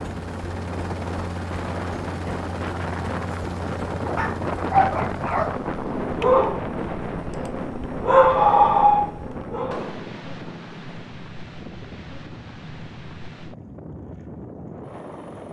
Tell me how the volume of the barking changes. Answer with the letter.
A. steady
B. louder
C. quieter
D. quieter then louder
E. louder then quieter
D.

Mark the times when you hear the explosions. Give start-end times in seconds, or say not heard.
9.7-10.1.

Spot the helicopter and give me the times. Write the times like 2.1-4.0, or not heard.
0.0-15.4.